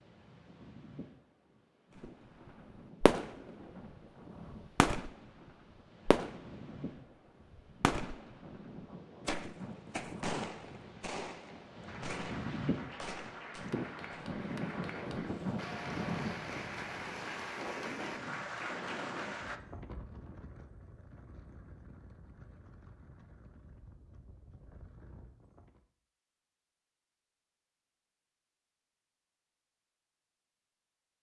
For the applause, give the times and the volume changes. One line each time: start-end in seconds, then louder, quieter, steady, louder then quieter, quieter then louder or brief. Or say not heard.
11.8-19.6 louder.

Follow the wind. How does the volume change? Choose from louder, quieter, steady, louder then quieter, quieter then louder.
louder then quieter.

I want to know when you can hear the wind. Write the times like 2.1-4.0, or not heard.
0.0-25.9.